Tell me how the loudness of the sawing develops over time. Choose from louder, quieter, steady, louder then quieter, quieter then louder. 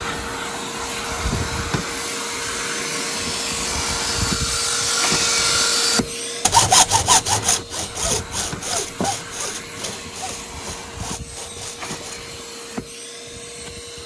louder then quieter.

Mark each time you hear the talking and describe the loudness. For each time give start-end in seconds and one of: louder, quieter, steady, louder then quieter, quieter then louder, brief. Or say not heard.
not heard.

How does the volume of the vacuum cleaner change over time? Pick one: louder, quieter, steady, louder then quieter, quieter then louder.
quieter.